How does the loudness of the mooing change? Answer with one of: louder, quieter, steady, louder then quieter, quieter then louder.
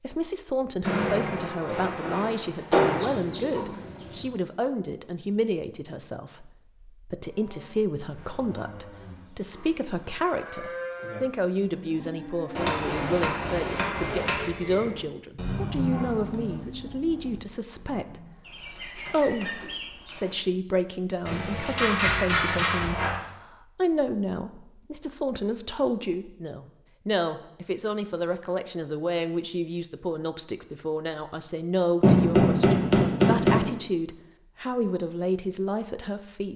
louder then quieter.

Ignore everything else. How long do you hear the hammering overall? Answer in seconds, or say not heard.
8 s.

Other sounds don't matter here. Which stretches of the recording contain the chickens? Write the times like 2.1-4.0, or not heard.
2.8-4.3, 18.4-20.4.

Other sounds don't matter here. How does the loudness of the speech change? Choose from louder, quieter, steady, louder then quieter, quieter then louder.
steady.